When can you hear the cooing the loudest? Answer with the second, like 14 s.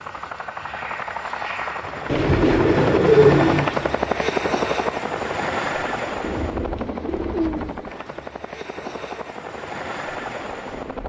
3 s.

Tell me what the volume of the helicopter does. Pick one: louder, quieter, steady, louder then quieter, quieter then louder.
louder then quieter.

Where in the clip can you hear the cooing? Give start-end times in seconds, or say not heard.
2.0-3.8, 6.2-7.8.